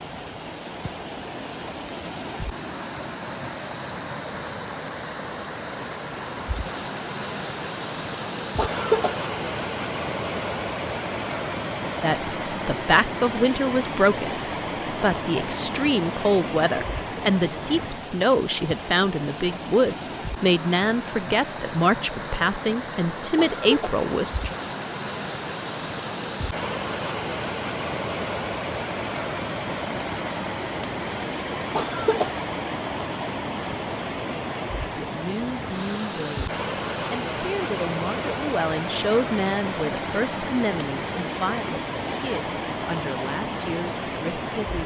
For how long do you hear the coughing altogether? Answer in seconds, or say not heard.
2 s.